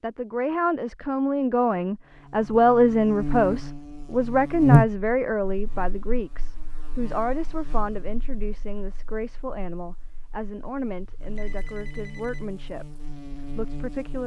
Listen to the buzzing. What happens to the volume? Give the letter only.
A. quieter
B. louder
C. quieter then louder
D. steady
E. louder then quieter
C.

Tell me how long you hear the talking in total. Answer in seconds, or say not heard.
14 s.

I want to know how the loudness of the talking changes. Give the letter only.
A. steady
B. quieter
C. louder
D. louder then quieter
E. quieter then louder
B.